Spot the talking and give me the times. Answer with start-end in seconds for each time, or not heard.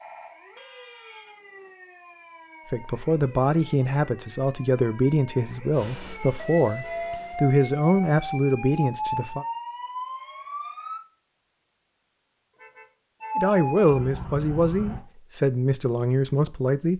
2.7-9.4, 13.3-16.9.